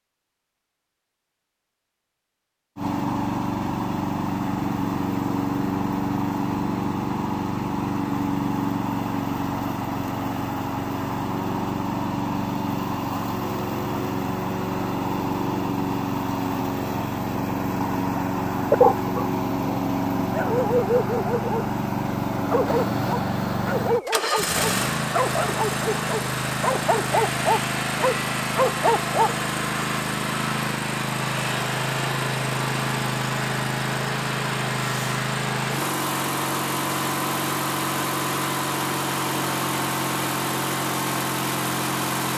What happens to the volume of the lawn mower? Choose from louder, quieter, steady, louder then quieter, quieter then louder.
steady.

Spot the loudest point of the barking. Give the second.
19 s.